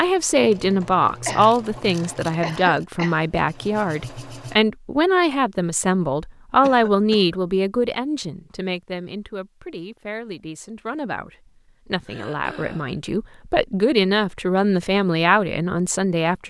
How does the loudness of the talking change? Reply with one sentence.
The volume of the talking goes down, then up.